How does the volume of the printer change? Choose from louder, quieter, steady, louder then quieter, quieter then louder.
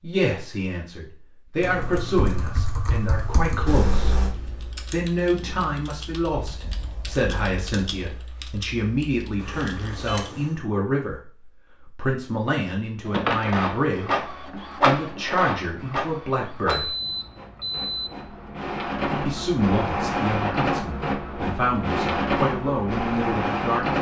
quieter then louder.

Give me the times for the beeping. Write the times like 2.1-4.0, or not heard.
3.6-4.3, 9.4-10.6, 16.6-18.1.